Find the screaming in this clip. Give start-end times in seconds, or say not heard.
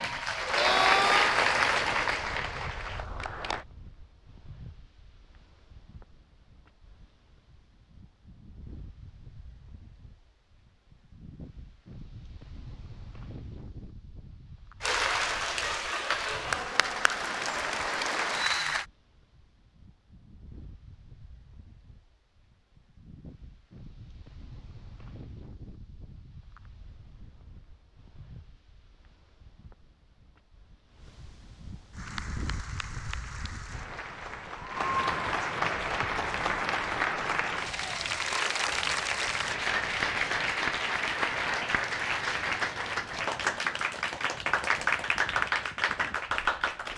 0.6-1.4.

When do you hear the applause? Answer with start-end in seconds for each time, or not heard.
0.0-3.6, 14.8-18.9, 31.9-46.9.